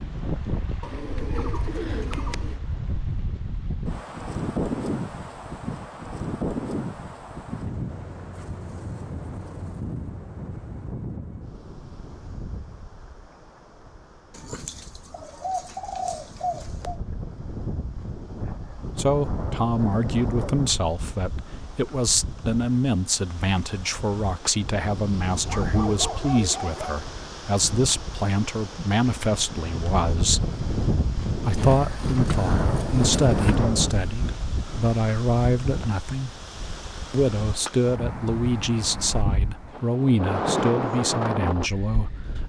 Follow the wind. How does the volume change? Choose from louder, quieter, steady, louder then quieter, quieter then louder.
quieter then louder.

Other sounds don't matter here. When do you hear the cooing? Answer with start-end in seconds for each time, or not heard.
0.8-2.6, 14.3-17.0, 31.6-33.6.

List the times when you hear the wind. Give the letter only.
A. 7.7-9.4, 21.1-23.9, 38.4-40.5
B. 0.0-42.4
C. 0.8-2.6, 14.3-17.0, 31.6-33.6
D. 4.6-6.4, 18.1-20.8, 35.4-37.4
B.